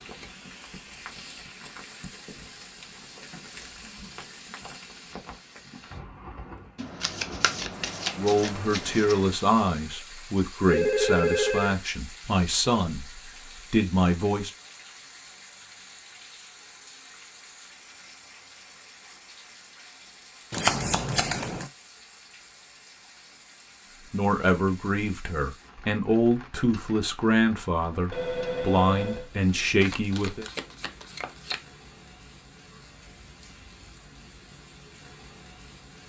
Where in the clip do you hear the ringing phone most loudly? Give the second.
11 s.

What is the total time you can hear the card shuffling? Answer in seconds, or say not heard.
6 s.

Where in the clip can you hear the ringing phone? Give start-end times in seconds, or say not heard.
10.7-11.8, 28.1-29.2.